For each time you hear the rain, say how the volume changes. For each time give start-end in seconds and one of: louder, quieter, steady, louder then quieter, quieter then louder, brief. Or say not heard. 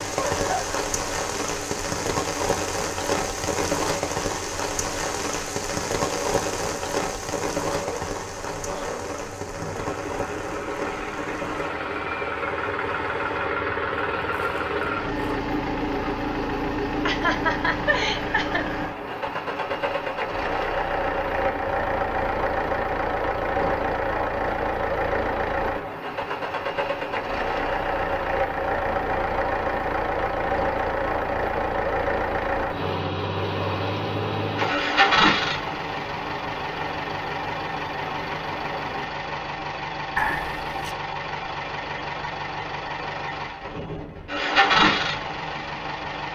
0.0-39.1 quieter.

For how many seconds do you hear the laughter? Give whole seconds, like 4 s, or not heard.
3 s.